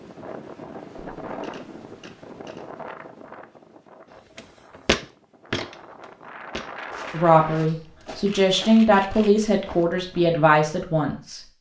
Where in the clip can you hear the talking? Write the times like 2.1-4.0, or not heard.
7.1-11.4.